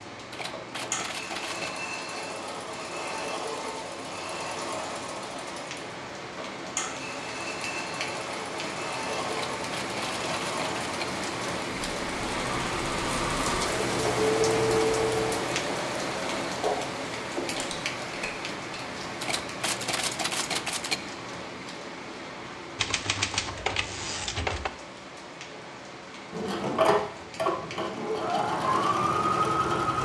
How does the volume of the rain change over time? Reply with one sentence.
The volume of the rain goes up, then down.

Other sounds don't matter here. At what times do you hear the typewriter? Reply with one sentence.
The typewriter can be heard from 0.3 to 1.8 s, from 9.3 to 11.1 s, from 19.2 to 21.0 s and from 22.8 to 24.7 s.